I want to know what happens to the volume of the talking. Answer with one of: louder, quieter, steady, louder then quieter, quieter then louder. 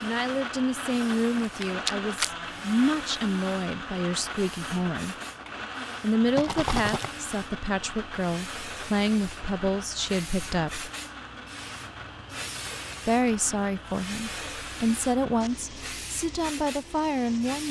steady.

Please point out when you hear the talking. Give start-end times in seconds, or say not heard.
0.0-5.2, 6.0-10.9, 13.1-17.6.